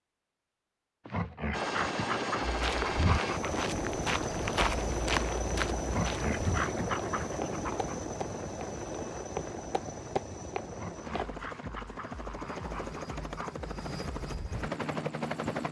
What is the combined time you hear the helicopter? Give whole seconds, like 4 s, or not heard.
14 s.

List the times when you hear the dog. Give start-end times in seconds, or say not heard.
1.1-3.6, 5.8-8.0, 10.7-13.6.